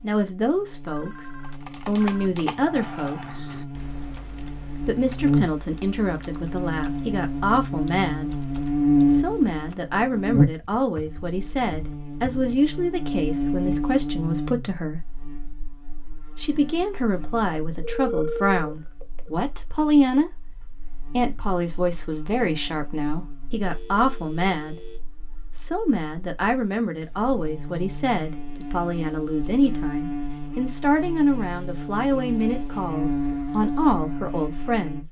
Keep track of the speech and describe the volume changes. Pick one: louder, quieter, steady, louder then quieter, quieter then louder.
steady.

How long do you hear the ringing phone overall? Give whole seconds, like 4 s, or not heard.
4 s.